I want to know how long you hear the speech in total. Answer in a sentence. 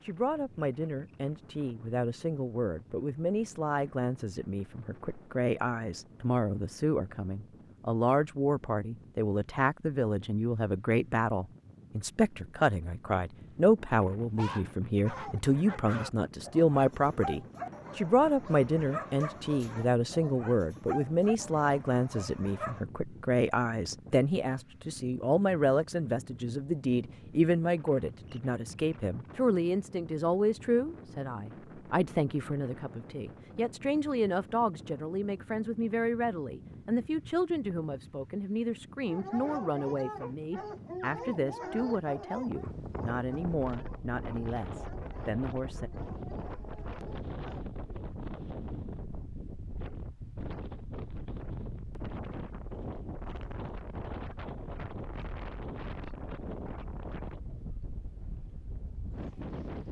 You can hear the speech for 46 seconds altogether.